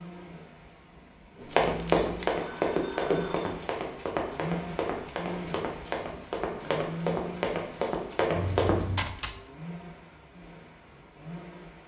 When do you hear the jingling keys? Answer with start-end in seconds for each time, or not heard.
1.6-2.4, 8.6-9.4.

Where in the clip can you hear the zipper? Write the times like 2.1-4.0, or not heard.
not heard.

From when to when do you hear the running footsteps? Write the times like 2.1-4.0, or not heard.
1.4-8.8.